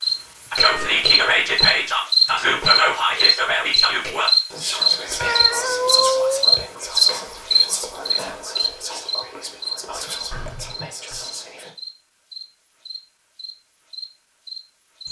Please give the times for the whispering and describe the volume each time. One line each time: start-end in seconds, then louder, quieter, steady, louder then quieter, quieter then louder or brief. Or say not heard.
0.5-11.8 quieter.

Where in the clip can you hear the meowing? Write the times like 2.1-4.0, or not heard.
0.1-0.9, 5.2-6.5, 10.3-11.2.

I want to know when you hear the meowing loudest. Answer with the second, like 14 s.
6 s.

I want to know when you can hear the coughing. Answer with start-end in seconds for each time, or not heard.
not heard.